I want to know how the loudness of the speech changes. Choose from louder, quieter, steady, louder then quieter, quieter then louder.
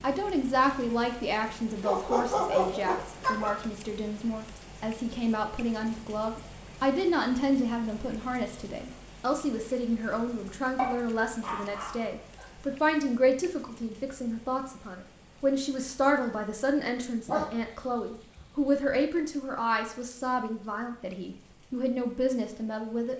steady.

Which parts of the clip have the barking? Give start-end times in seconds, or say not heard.
1.8-3.6, 10.8-12.4, 17.2-18.9.